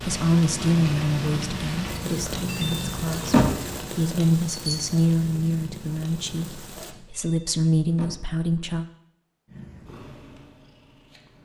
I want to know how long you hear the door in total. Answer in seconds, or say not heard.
3 s.